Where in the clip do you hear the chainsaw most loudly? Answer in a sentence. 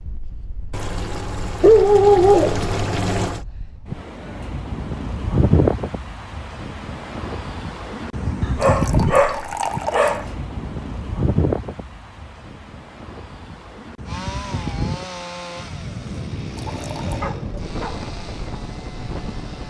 The loudest moment of the chainsaw is at 15 seconds.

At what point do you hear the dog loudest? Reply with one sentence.
The loudest moment of the dog is at 2 seconds.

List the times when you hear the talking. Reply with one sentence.
The talking can't be heard in this clip.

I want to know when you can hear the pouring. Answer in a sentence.
You can hear the pouring from 0.7 to 3.5 s, from 8.6 to 10.2 s and from 16.6 to 17.2 s.